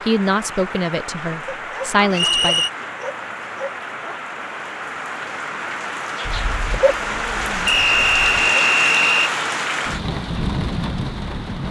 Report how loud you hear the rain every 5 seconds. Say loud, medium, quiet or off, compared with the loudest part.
medium, loud, loud.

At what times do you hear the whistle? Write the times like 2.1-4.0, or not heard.
2.1-2.7, 7.7-9.3.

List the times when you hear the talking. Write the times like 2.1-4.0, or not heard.
0.0-2.6.